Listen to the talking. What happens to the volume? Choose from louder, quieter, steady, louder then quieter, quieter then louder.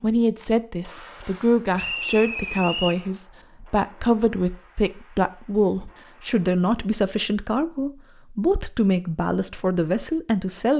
steady.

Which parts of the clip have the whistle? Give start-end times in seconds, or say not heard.
1.8-3.0.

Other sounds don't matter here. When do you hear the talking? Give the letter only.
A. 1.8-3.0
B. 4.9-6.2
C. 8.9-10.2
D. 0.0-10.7
D.